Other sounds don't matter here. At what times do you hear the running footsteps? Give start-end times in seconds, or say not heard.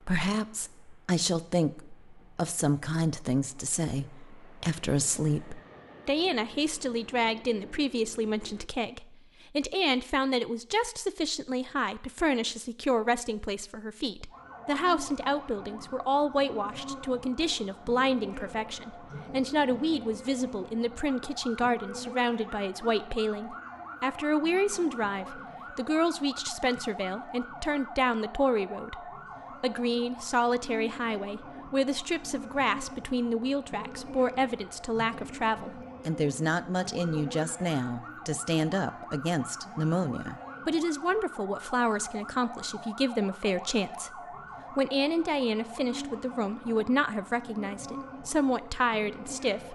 not heard.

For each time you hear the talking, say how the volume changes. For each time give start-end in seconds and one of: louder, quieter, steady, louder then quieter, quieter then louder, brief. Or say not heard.
0.0-49.7 steady.